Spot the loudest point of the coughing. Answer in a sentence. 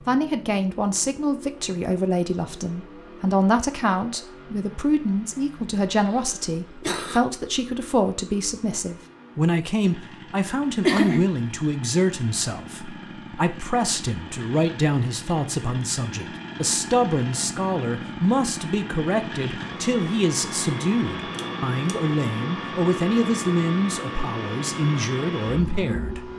The loudest moment of the coughing is at 11 seconds.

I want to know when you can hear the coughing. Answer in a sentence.
The coughing can be heard from 6.0 to 7.2 s, from 10.8 to 11.2 s and from 21.4 to 21.9 s.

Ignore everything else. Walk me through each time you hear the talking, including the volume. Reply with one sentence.
The talking can be heard from 0.1 to 26.3 s, at a steady volume.